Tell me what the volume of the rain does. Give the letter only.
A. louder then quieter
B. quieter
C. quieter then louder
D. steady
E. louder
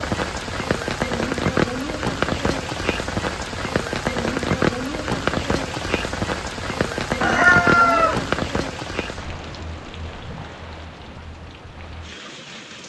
B.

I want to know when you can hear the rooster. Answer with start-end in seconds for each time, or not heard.
7.2-8.2.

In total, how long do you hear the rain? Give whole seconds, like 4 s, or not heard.
13 s.